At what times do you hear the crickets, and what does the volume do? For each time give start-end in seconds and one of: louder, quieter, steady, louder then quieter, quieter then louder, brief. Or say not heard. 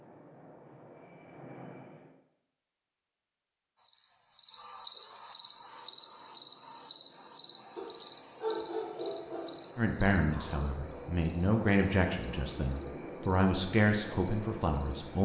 3.8-15.2 quieter.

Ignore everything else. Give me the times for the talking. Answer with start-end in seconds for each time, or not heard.
9.8-15.2.